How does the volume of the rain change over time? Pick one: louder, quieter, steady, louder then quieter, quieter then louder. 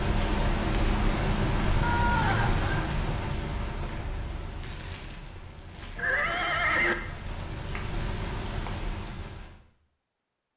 quieter then louder.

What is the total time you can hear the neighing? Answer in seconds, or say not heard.
2 s.